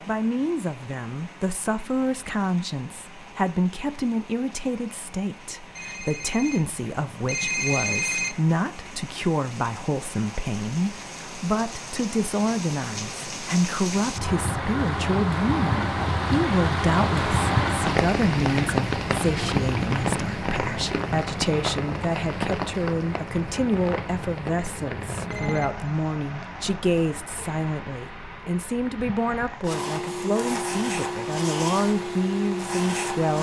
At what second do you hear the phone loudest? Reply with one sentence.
The volume of the phone peaks at 8 seconds.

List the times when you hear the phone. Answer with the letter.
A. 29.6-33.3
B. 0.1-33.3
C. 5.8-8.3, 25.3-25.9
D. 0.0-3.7
C.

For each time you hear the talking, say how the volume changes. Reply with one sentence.
The talking can be heard from 0.1 to 33.3 s, at a steady volume.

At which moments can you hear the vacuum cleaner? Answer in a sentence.
The vacuum cleaner can be heard from 29.6 to 33.3 s.